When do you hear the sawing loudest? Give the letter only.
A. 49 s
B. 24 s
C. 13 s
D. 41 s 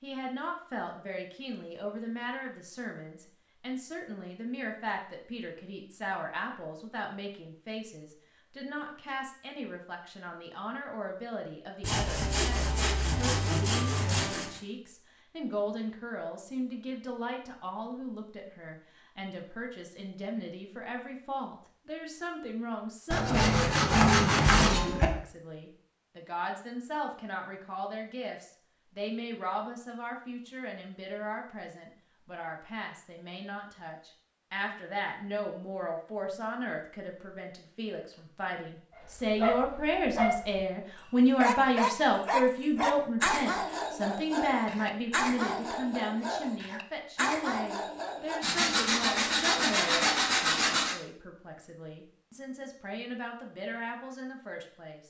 B.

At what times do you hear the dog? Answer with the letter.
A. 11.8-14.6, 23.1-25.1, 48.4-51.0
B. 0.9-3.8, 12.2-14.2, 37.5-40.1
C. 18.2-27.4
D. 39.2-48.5
D.